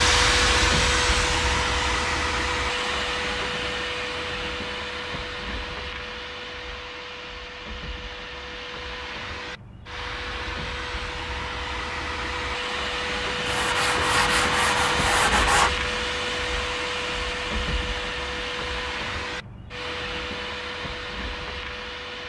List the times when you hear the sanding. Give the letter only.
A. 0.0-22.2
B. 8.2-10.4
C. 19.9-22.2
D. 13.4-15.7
D.